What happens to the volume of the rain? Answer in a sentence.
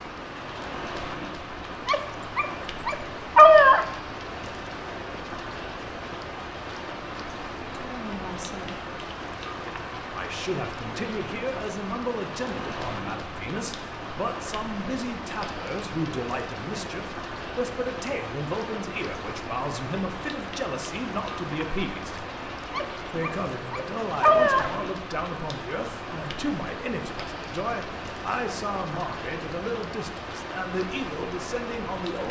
The loudness of the rain stays about the same.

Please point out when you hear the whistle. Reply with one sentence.
You can't hear the whistle here.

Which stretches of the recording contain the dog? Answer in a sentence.
The dog can be heard from 1.9 to 3.9 s and from 22.7 to 24.7 s.